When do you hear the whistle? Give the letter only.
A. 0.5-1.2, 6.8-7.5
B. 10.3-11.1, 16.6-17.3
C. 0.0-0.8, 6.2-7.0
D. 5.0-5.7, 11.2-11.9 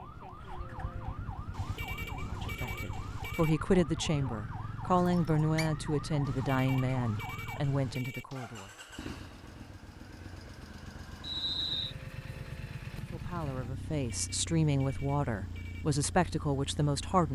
D.